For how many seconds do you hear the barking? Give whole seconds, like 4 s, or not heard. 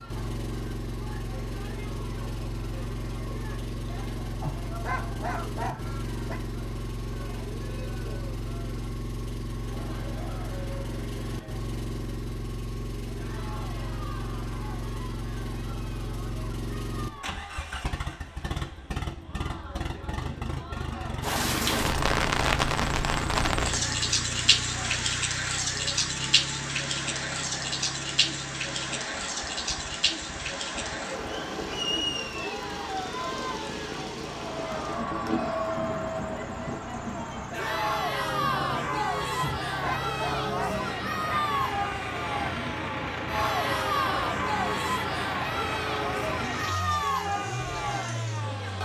4 s.